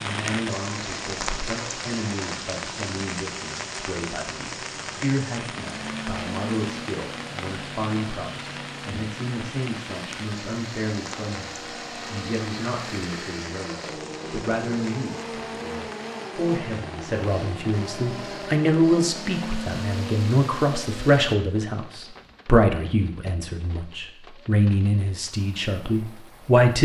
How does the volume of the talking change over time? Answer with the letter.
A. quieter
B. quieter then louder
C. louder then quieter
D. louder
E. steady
D.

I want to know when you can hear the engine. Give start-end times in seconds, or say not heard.
5.5-21.4.